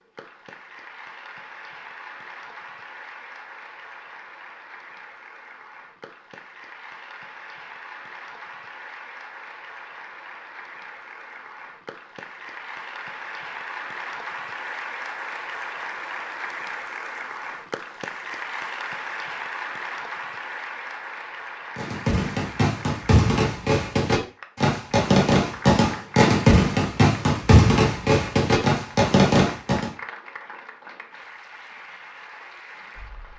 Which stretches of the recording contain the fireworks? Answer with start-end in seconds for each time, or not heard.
21.8-29.9.